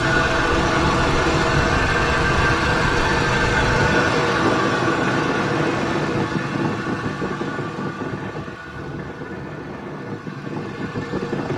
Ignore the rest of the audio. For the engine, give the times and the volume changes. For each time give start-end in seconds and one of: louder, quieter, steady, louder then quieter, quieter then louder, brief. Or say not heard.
0.0-11.5 quieter.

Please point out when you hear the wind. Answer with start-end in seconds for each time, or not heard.
0.0-11.5.